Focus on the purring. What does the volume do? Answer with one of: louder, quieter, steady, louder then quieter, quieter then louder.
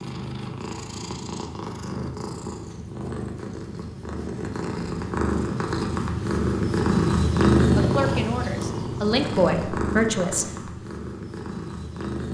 louder then quieter.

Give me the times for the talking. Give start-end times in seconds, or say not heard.
7.8-10.4.